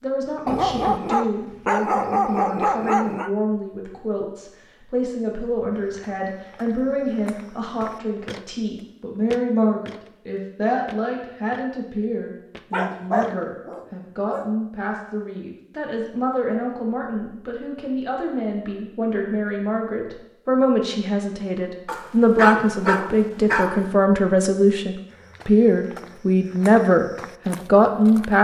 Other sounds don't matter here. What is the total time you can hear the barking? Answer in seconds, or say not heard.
7 s.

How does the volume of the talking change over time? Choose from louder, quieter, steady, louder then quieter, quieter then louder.
louder.